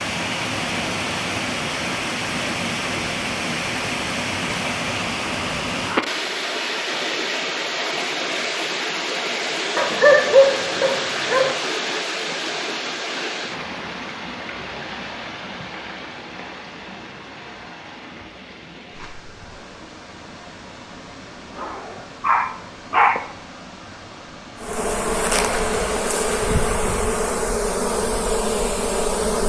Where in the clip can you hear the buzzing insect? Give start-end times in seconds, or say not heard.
24.6-29.4.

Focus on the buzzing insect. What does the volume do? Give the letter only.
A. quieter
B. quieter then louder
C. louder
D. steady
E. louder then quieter
D.